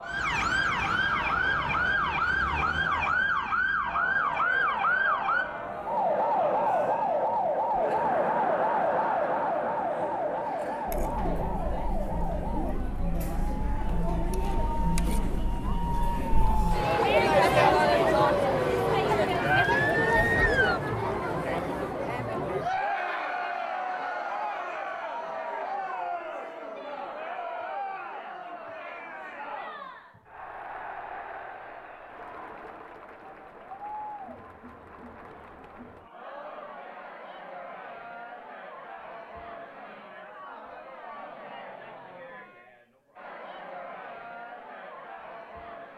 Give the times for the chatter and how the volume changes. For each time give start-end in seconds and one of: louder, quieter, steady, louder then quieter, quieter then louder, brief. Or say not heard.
0.0-45.9 louder then quieter.